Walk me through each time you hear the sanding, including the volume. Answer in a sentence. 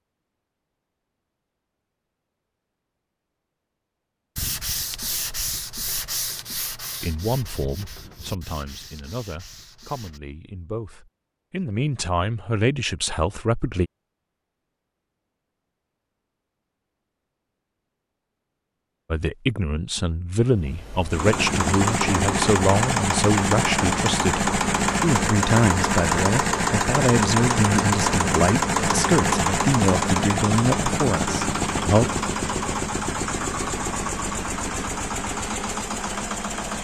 You can hear the sanding from 4.3 to 10.2 s, getting quieter.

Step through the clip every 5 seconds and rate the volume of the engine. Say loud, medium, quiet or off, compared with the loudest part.
off, off, off, off, loud, loud, loud, medium.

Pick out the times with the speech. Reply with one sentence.
You can hear the speech from 7.0 to 13.9 s and from 19.1 to 32.1 s.